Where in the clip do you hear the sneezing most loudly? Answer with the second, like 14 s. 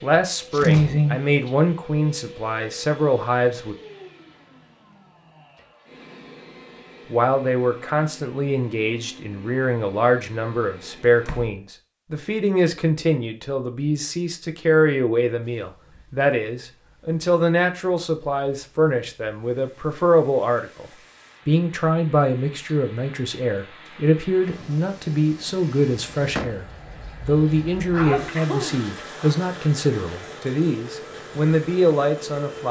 1 s.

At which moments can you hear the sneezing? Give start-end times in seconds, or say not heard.
0.5-1.2, 27.9-29.4.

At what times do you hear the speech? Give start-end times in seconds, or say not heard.
0.0-3.8, 7.1-32.6.